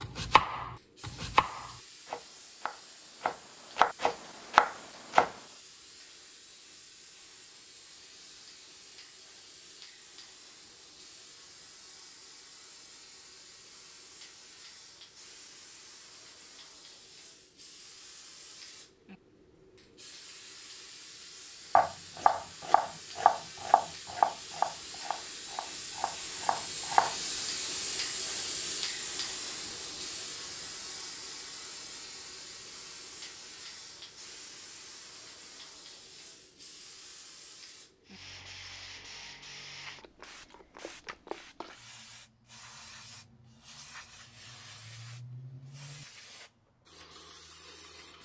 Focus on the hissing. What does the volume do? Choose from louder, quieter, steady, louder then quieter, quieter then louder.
louder then quieter.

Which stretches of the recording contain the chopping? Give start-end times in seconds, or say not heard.
0.0-5.3, 21.8-27.1.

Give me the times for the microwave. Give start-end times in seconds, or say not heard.
not heard.